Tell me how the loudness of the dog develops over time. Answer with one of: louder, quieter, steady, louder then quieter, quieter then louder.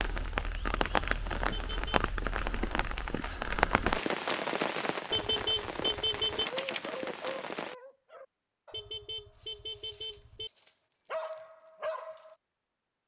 quieter then louder.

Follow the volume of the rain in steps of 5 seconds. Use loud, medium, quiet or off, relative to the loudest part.
loud, medium, off.